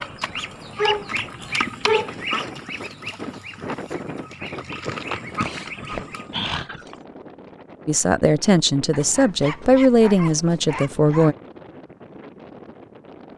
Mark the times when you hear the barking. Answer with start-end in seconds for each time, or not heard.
0.8-2.2, 5.4-7.0, 8.9-11.3.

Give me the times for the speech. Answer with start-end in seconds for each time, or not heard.
7.8-11.3.